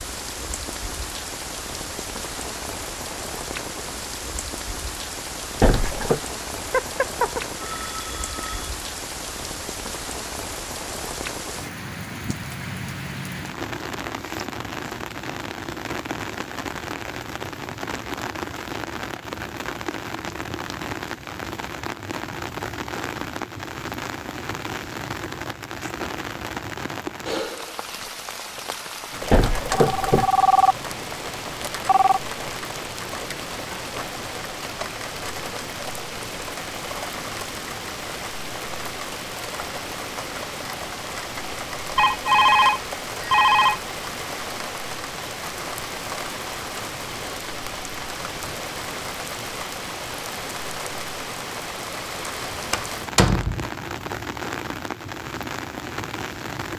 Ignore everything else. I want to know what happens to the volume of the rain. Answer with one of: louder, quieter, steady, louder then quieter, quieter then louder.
steady.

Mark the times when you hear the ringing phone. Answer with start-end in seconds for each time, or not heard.
6.7-8.7, 29.6-32.2, 42.0-43.8.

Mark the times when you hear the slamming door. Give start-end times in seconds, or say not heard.
5.6-6.2, 29.3-30.3, 52.7-53.7.